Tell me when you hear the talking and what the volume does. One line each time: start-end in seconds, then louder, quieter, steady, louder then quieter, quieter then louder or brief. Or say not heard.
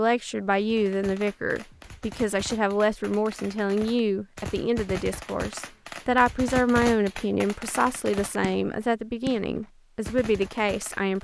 0.0-11.1 steady.